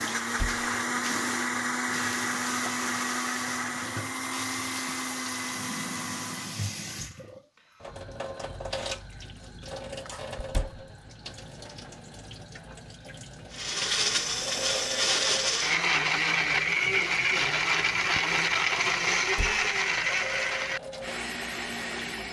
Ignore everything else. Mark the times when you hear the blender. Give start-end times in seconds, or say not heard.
0.0-6.8, 13.5-22.2.